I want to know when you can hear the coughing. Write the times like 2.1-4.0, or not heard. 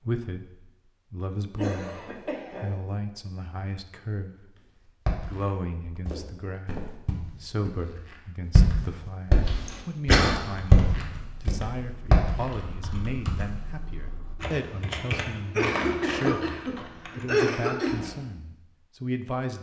1.6-2.8, 9.7-10.3, 15.6-18.0.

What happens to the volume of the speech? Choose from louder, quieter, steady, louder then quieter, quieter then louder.
steady.